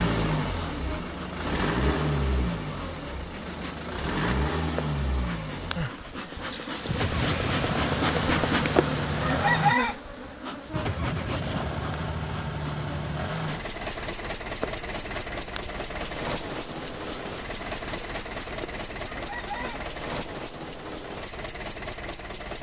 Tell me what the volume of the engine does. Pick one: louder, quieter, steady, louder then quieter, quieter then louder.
quieter.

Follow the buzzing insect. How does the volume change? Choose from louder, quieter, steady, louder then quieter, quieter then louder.
louder then quieter.